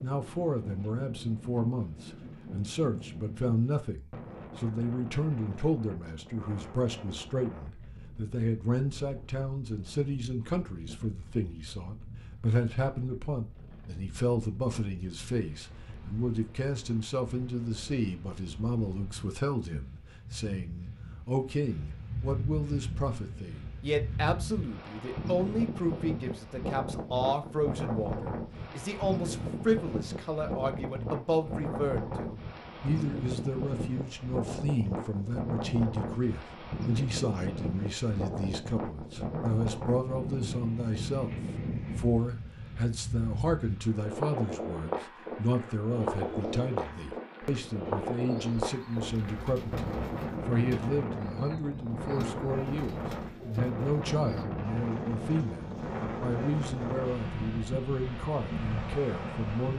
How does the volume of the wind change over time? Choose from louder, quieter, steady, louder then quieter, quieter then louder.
louder.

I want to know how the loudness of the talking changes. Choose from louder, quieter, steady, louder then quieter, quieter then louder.
steady.